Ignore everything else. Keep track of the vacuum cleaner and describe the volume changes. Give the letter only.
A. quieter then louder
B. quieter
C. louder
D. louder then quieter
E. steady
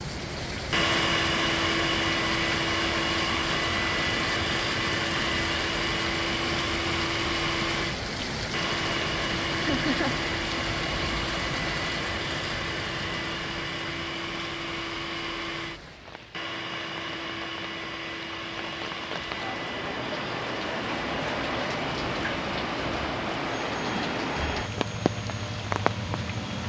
B.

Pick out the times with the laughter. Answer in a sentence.
The laughter can be heard from 9.7 to 10.2 s.